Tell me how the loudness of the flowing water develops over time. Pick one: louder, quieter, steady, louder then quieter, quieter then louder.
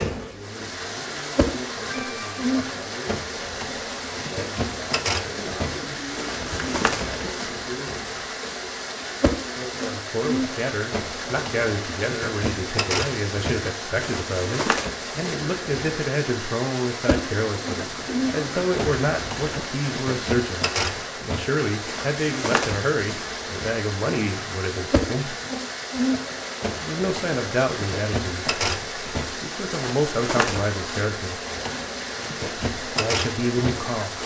steady.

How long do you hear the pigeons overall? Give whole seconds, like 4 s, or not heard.
4 s.